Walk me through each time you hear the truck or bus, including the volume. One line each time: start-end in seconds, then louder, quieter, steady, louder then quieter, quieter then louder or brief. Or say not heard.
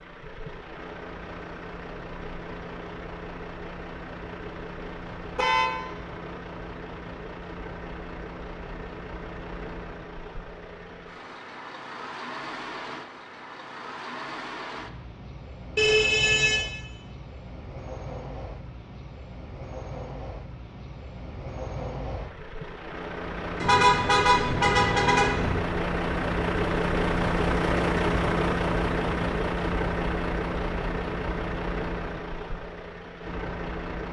0.0-34.0 louder.